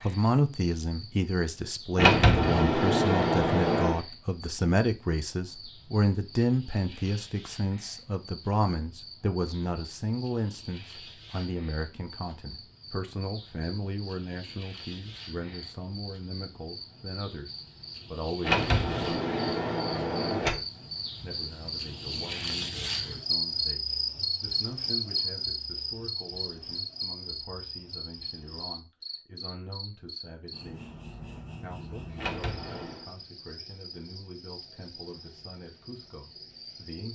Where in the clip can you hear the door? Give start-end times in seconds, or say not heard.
1.9-4.0, 18.4-20.6, 32.1-33.1.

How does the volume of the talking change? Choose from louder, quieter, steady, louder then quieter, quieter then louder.
quieter.